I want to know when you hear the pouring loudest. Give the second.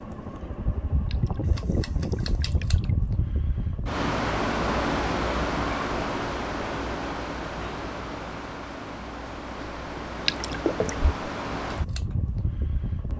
11 s.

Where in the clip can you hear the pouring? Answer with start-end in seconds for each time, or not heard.
1.1-3.0, 10.2-11.1.